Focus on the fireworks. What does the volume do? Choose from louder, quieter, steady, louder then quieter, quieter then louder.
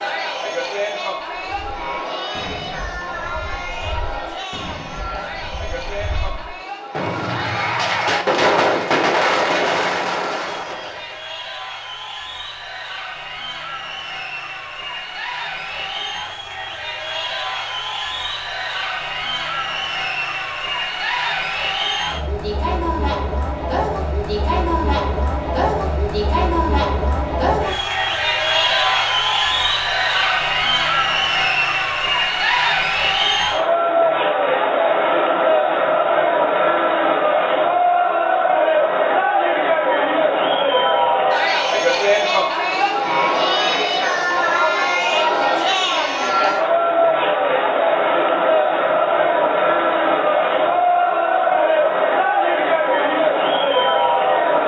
louder.